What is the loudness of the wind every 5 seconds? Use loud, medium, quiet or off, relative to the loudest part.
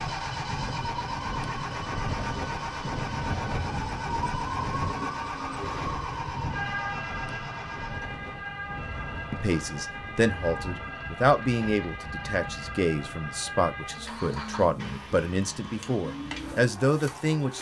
loud, medium, medium, off.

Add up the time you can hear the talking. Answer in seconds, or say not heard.
8 s.